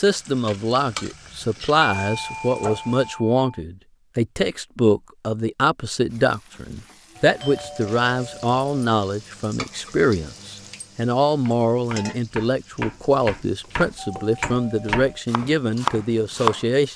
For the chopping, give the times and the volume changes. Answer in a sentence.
You can hear the chopping from 11.4 to 16.6 s, getting louder.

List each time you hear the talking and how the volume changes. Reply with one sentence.
You can hear the talking from 0.0 to 16.9 s, at a steady volume.